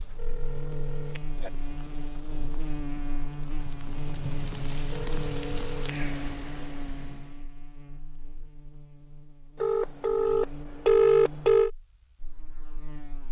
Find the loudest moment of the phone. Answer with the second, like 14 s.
11 s.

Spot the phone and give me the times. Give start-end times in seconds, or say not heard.
0.1-1.5, 4.9-6.0, 9.6-11.7.